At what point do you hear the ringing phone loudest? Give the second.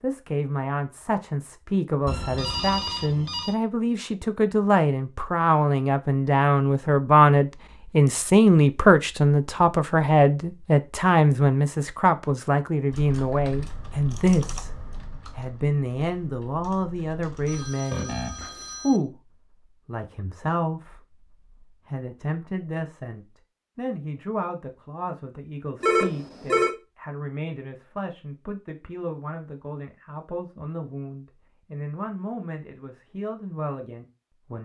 26 s.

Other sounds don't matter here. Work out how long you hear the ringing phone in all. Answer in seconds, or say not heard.
4 s.